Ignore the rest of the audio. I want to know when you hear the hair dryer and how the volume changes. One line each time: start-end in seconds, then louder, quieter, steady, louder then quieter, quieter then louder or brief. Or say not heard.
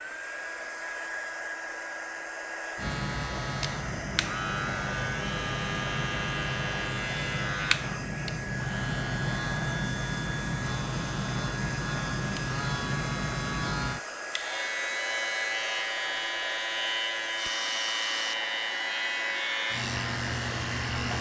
0.0-21.1 steady.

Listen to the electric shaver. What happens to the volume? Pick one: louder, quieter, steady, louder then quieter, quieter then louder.
steady.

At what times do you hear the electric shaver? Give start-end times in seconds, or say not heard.
2.8-21.1.